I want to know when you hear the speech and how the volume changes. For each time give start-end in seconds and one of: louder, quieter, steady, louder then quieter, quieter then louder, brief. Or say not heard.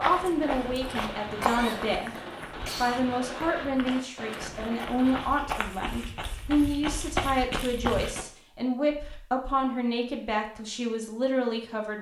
0.0-2.1 brief
2.8-11.9 steady.